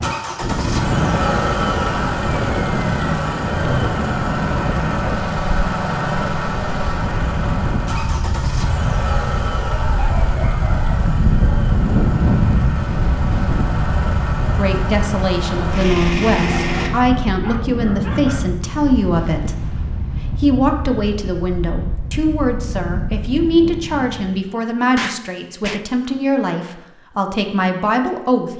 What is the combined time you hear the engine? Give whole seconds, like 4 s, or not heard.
17 s.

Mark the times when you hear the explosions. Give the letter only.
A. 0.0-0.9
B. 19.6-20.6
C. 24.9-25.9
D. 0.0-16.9
C.